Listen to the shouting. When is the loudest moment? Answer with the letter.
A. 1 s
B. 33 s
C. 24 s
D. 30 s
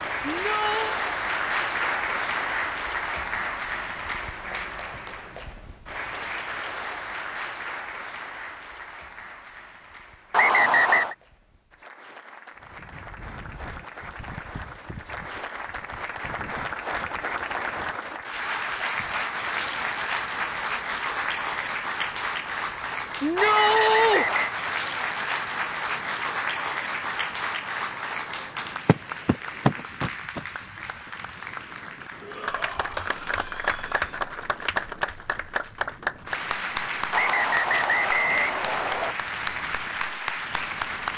C.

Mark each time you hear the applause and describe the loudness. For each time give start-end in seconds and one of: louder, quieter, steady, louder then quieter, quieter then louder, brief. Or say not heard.
0.0-41.1 quieter then louder.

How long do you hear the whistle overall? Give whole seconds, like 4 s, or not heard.
4 s.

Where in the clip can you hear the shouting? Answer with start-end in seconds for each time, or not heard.
0.2-1.0, 23.2-24.2, 32.2-34.0.